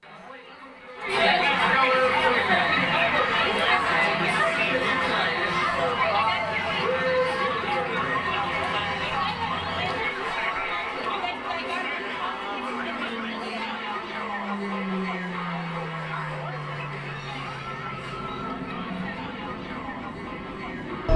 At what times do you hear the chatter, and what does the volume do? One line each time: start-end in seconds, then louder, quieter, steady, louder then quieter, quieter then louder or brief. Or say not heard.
0.0-21.1 quieter.